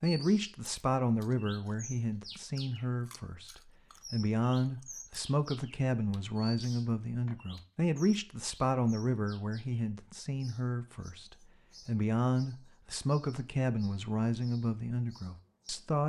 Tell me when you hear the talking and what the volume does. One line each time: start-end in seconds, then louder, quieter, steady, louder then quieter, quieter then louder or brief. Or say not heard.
0.0-16.0 steady.